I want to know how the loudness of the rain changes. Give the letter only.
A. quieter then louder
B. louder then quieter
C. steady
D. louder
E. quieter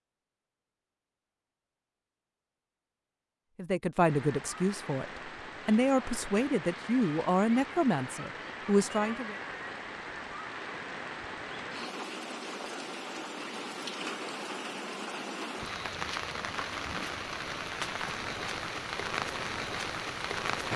D.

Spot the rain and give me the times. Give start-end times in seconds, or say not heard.
4.0-20.7.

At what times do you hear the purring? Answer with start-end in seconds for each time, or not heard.
not heard.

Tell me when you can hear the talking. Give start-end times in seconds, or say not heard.
3.5-9.3.